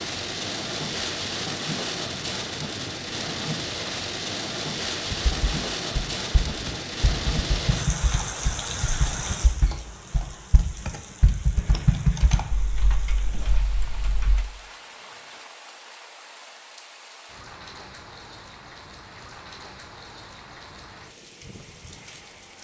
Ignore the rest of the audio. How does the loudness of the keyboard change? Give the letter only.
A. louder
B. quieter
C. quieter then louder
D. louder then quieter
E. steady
D.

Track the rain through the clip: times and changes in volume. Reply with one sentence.
The rain can be heard from 0.0 to 22.5 s, getting quieter.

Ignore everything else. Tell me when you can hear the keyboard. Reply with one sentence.
The keyboard can be heard from 5.0 to 14.4 s.